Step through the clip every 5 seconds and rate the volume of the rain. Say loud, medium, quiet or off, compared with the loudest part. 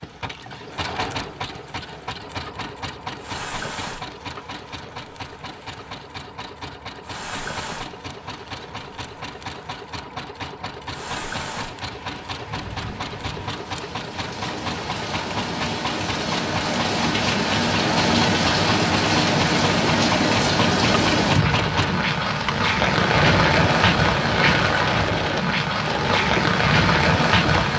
quiet, quiet, quiet, loud, loud, loud.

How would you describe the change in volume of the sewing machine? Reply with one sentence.
The loudness of the sewing machine goes up.